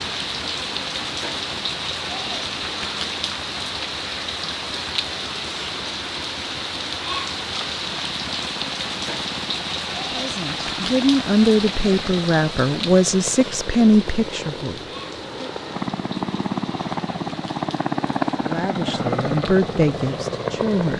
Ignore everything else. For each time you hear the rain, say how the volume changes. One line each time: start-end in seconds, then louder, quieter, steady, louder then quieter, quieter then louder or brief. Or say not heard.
0.0-20.9 quieter.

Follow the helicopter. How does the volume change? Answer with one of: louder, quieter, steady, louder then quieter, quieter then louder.
louder.